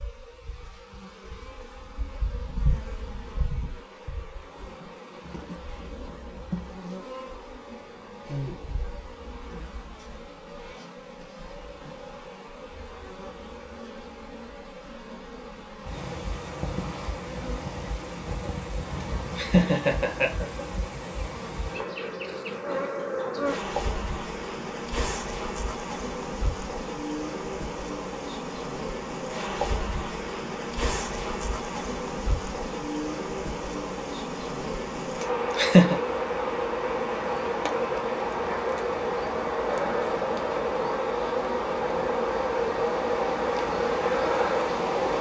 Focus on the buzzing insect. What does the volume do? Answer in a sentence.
The loudness of the buzzing insect goes up.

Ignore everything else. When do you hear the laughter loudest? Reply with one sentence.
The volume of the laughter peaks at 36 seconds.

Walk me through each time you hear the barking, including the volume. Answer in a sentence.
The barking can't be heard in this clip.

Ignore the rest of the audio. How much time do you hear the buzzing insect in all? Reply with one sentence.
The buzzing insect can be heard for 45 seconds in total.